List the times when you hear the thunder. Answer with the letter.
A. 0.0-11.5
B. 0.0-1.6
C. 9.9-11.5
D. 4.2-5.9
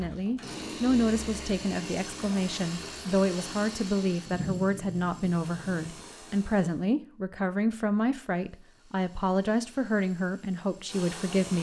D.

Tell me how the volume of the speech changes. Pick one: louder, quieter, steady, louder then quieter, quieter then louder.
steady.